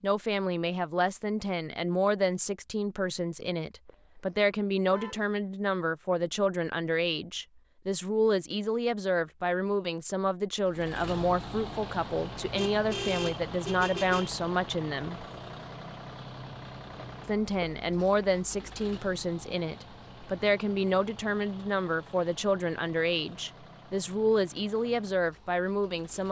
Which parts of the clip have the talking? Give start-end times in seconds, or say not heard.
0.0-15.2, 17.2-26.2.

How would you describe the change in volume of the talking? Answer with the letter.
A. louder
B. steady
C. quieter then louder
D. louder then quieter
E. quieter
B.